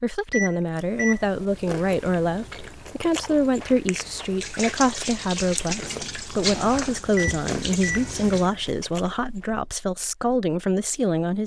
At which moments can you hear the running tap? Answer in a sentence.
The running tap can be heard from 4.4 to 8.4 s.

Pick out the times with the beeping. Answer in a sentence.
The beeping can be heard from 0.3 to 1.2 s and from 7.2 to 8.1 s.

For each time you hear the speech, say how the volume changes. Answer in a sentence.
You can hear the speech from 0.0 to 11.4 s, at a steady volume.